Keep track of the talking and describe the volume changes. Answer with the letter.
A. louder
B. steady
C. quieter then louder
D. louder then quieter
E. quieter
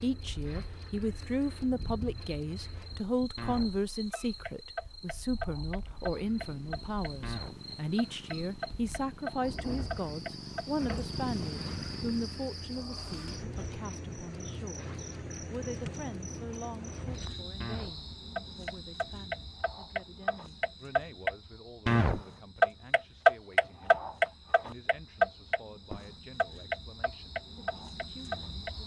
E.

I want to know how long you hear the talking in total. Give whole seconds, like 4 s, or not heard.
28 s.